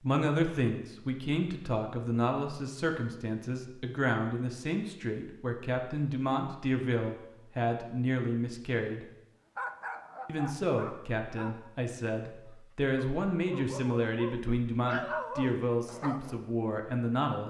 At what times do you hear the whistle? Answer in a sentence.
The whistle can't be heard in this clip.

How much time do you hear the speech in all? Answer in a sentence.
You can hear the speech for 16 seconds altogether.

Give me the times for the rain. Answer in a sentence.
The rain can't be heard in this clip.